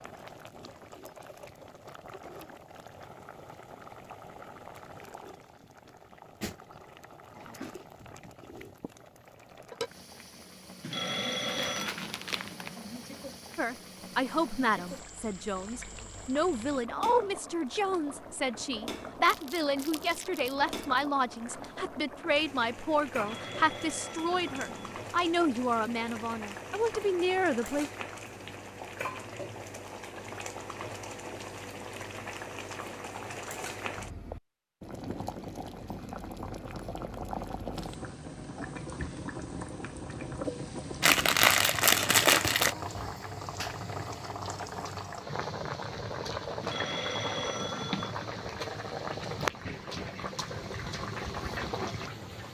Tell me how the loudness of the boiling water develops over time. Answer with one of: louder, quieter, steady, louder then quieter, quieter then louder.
louder.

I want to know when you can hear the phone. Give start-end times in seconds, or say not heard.
10.8-11.9, 23.2-25.1, 46.6-48.1.